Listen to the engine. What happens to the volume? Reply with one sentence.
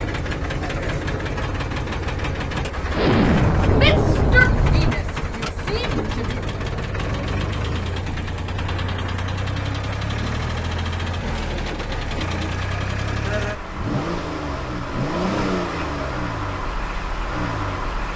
The volume of the engine stays about the same.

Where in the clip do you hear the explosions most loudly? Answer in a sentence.
The loudest moment of the explosions is at 3 seconds.